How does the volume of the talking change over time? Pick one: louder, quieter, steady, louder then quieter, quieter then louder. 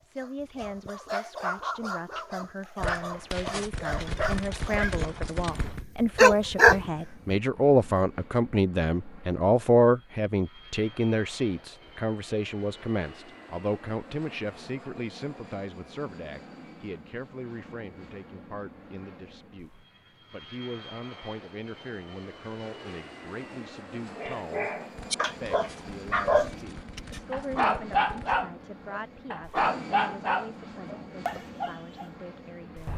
louder then quieter.